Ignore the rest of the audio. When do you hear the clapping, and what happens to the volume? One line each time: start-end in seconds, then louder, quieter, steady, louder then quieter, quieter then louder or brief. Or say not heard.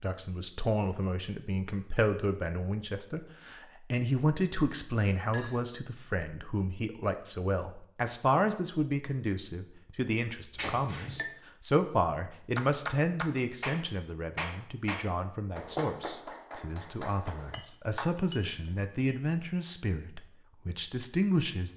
12.6-18.1 quieter.